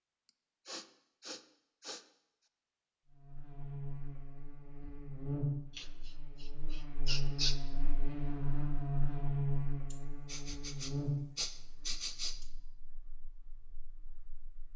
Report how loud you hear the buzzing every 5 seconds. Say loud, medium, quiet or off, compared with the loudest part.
medium, loud, medium.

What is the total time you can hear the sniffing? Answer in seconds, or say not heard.
6 s.